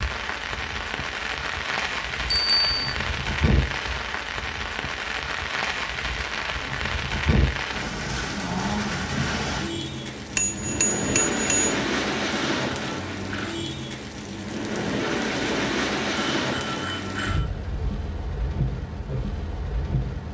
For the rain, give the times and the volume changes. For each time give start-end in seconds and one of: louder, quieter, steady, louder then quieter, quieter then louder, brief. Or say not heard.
0.0-20.2 steady.